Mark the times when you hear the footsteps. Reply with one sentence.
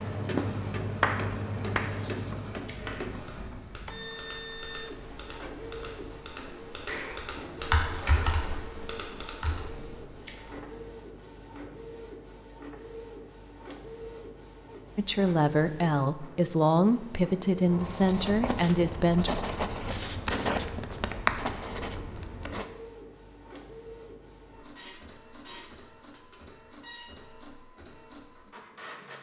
The footsteps can't be heard in this clip.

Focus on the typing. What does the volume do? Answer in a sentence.
The volume of the typing goes up, then down.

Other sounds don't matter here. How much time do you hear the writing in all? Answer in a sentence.
The writing can be heard for 8 seconds in total.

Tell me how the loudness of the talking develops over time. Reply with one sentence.
The volume of the talking stays about the same.